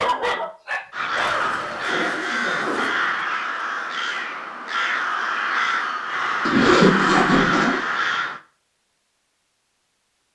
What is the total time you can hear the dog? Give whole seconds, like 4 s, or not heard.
2 s.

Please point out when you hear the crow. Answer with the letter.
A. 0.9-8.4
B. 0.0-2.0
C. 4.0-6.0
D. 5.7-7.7
A.